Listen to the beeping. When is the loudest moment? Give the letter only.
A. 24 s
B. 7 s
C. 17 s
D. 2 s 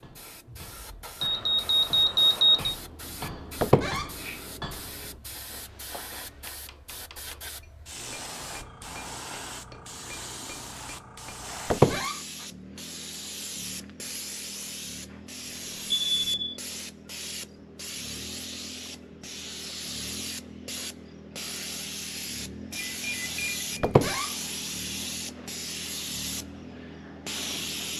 D.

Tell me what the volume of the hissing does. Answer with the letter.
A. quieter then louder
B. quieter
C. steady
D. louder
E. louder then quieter
D.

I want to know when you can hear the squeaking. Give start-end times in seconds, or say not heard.
3.6-4.1, 11.7-12.2, 23.8-24.3.